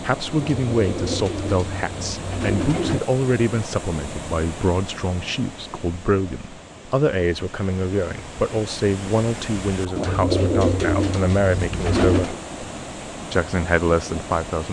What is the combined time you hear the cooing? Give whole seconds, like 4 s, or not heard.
5 s.